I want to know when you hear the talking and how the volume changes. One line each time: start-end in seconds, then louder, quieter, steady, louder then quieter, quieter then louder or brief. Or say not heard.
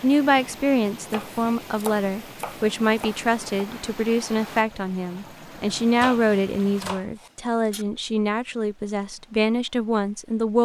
0.0-10.6 steady.